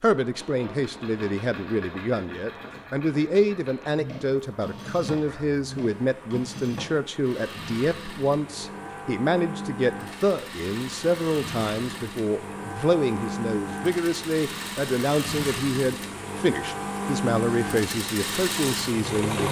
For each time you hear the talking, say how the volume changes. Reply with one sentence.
You can hear the talking from 0.0 to 19.4 s, at a steady volume.